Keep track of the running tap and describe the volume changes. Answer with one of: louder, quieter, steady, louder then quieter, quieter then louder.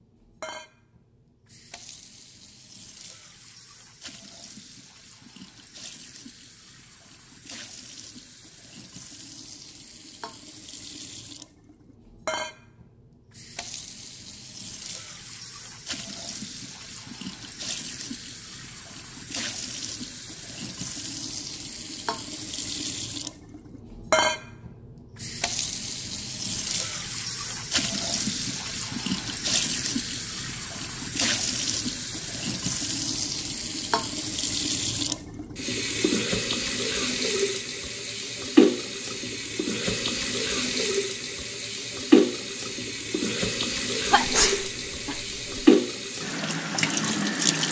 louder.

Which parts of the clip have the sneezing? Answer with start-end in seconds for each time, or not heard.
44.1-45.6.